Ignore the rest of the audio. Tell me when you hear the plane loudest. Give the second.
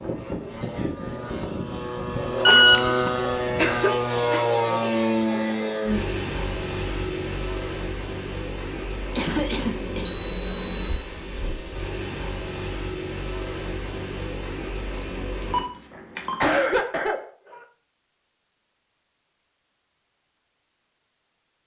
5 s.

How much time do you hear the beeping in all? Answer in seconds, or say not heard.
3 s.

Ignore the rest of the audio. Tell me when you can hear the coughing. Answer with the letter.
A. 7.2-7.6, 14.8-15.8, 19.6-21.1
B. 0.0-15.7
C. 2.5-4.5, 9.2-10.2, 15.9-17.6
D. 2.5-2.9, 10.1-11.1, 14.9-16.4
C.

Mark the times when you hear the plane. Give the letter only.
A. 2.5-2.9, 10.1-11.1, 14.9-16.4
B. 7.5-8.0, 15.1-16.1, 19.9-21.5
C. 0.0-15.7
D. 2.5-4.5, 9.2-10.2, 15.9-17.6
C.